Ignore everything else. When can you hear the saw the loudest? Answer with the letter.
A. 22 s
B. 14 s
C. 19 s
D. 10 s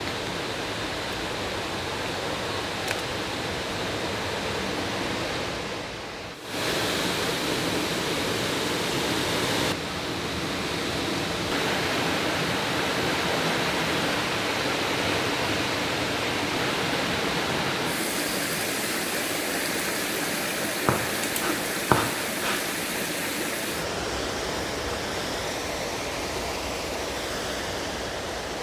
A.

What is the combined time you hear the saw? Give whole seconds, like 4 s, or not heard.
2 s.